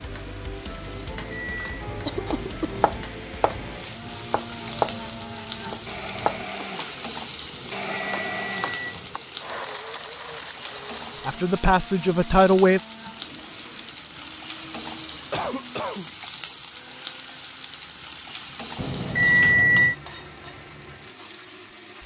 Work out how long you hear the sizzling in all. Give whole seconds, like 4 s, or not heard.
22 s.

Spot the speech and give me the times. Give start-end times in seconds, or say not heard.
11.2-12.8.